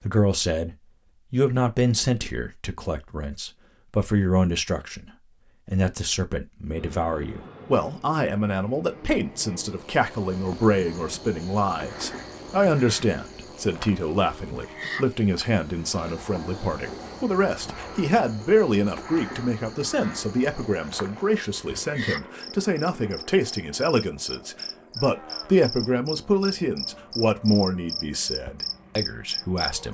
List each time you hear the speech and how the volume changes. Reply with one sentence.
You can hear the speech from 0.0 to 29.8 s, at a steady volume.